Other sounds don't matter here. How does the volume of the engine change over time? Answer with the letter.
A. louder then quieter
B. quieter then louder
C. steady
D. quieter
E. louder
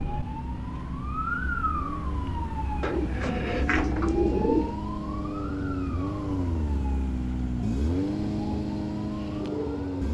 E.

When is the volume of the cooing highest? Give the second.
4 s.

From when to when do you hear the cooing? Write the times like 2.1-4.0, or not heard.
2.8-4.8.